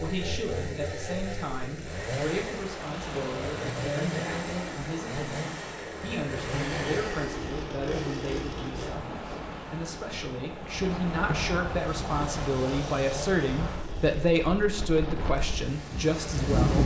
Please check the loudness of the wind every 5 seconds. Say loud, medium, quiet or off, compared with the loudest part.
medium, medium, medium, loud.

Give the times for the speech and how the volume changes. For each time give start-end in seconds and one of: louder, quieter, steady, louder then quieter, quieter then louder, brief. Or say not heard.
0.0-16.8 louder.